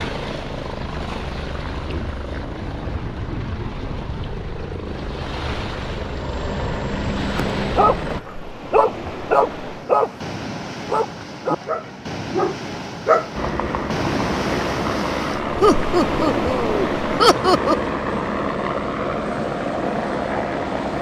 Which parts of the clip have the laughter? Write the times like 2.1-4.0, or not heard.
15.6-17.9.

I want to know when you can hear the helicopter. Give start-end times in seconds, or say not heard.
0.0-8.2, 13.3-20.9.